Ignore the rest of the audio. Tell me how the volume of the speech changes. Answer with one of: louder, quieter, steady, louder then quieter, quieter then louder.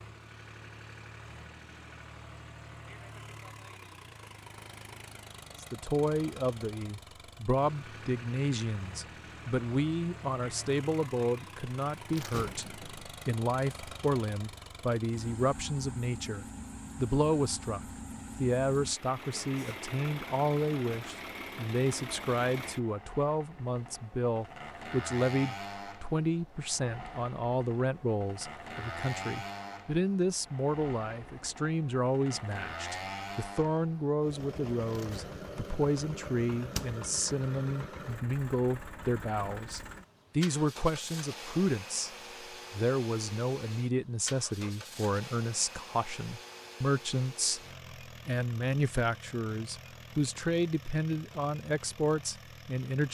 steady.